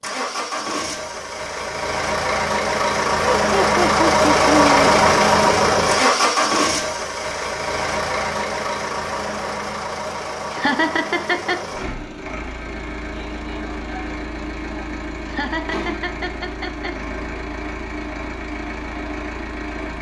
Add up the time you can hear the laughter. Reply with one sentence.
The laughter can be heard for 4 seconds in total.